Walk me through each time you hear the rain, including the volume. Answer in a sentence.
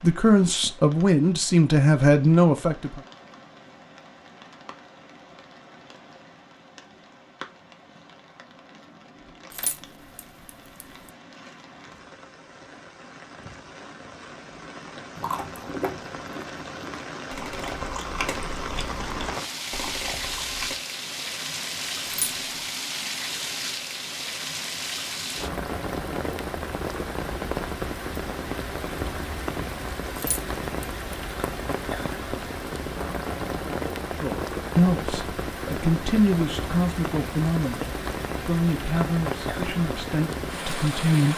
The rain can be heard from 0.0 to 41.3 s, getting louder.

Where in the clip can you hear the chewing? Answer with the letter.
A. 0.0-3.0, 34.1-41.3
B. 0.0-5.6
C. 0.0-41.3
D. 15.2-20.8
D.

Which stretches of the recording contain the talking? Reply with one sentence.
You can hear the talking from 0.0 to 3.0 s and from 34.1 to 41.3 s.